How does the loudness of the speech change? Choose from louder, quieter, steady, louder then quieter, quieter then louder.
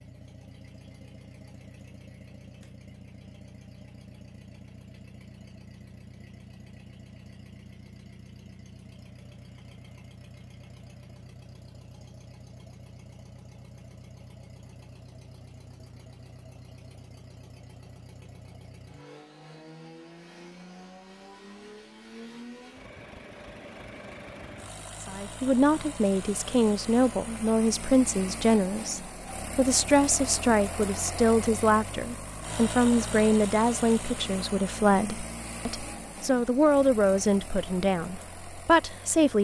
steady.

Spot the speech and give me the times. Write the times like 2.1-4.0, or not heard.
25.0-39.4.